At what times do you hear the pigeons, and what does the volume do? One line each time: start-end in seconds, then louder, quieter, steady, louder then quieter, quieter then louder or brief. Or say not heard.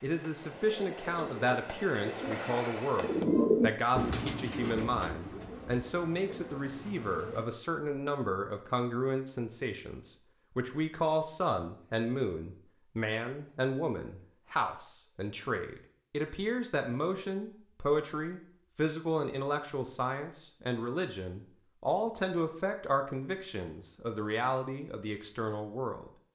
0.4-7.5 louder then quieter.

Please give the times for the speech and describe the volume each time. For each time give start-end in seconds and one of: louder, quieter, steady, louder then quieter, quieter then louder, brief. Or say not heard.
0.0-26.1 steady.